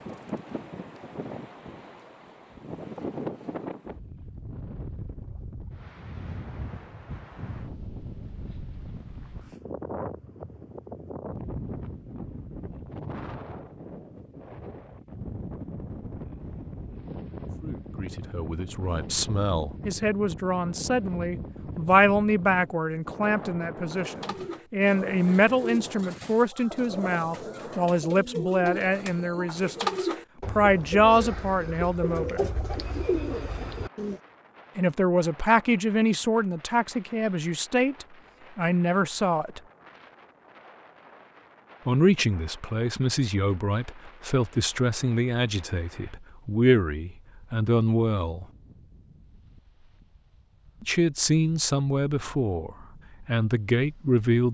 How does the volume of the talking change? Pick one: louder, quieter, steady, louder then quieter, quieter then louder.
steady.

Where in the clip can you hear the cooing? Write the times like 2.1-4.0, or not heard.
23.8-34.2.